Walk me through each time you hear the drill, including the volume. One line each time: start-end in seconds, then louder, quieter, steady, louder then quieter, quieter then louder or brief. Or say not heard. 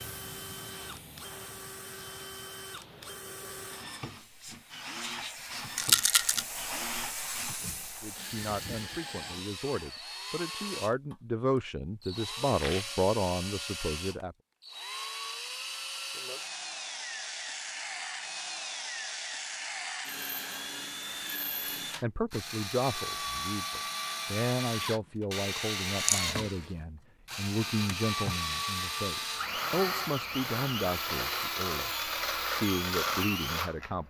0.0-34.0 louder.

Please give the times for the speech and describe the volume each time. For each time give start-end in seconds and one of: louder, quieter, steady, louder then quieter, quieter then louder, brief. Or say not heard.
8.0-14.3 louder
22.0-34.0 steady.